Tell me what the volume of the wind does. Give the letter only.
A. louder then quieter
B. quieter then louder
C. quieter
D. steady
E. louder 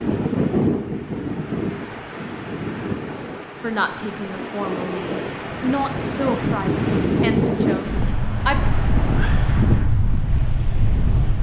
B.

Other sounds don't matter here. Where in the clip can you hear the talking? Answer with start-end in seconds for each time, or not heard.
3.6-8.7.